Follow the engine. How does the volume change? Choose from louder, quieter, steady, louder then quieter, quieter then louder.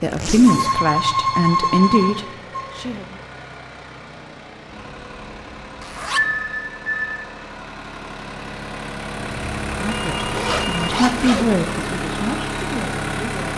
louder.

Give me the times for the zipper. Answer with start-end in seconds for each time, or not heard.
0.1-0.8, 5.8-6.3, 10.3-11.6.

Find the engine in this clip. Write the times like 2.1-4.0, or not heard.
0.0-13.5.